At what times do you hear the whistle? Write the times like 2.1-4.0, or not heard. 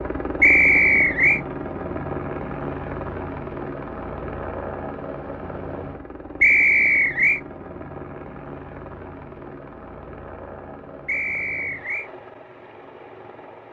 0.4-1.4, 6.4-7.4, 11.1-12.1.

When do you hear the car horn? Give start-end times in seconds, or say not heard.
not heard.